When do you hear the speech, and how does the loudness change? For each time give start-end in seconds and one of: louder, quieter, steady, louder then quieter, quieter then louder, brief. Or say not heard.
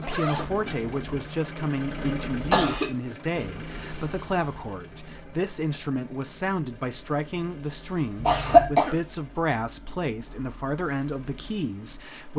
0.0-12.3 steady.